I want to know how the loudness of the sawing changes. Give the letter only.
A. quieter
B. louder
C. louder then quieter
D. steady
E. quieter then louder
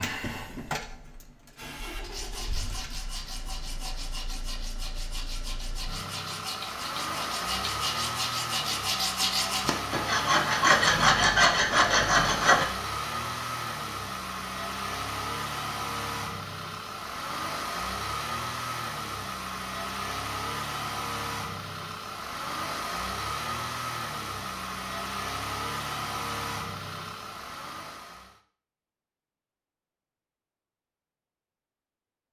B.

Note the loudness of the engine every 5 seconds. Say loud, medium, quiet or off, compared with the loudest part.
medium, loud, loud, loud, loud, loud, off.